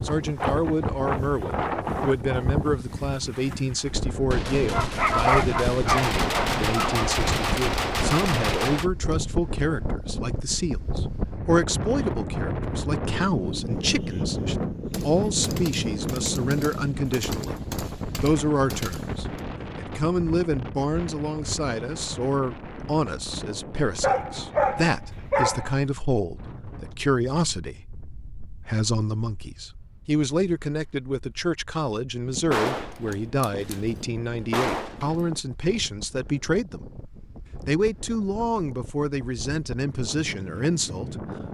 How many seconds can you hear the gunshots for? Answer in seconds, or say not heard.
12 s.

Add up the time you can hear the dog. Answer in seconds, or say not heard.
4 s.